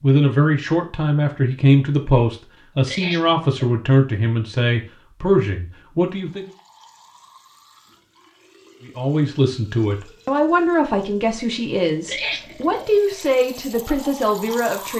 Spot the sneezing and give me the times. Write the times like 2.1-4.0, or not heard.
2.9-3.5, 12.1-12.9.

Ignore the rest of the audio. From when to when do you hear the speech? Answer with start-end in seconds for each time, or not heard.
0.0-6.5, 8.8-14.9.